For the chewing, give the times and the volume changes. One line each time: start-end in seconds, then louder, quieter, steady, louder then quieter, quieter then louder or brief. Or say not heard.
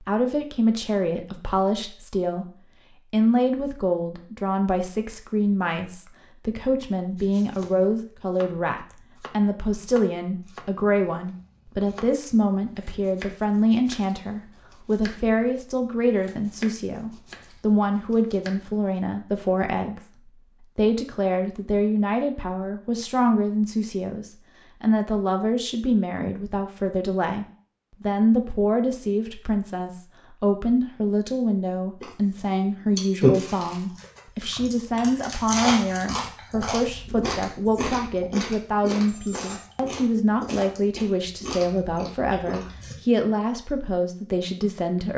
32.0-43.0 quieter.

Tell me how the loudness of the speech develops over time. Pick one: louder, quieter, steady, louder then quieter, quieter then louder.
steady.